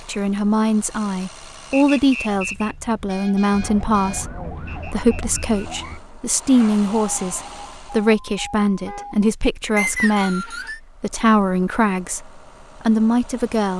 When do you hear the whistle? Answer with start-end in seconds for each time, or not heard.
1.7-2.8, 4.7-6.0, 9.8-10.8.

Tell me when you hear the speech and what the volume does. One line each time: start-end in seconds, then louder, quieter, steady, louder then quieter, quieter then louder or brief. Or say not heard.
0.0-13.7 steady.